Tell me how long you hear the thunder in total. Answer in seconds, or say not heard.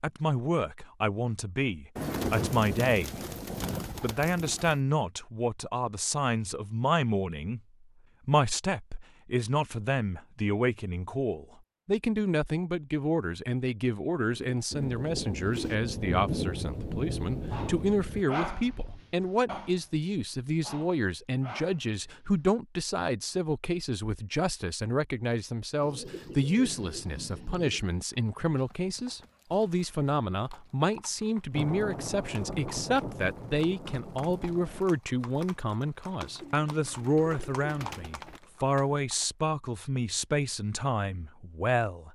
9 s.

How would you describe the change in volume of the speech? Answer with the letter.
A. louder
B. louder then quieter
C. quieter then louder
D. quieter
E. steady
E.